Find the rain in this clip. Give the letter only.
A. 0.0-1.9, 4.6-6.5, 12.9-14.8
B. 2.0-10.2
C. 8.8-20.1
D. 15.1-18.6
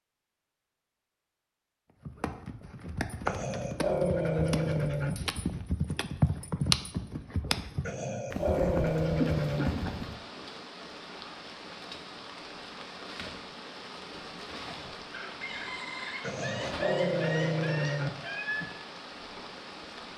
C.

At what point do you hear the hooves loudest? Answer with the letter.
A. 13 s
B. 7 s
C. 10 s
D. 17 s
B.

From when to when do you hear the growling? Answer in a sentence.
You can hear the growling from 3.2 to 5.2 s, from 7.8 to 9.7 s and from 16.2 to 18.1 s.